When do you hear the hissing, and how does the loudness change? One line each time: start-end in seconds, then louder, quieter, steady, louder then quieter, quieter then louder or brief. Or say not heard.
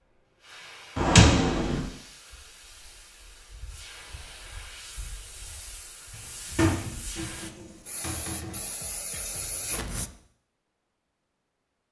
0.0-10.1 louder.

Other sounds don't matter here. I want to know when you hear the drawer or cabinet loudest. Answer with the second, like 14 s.
1 s.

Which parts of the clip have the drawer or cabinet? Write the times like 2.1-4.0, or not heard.
0.9-1.9, 6.1-8.6.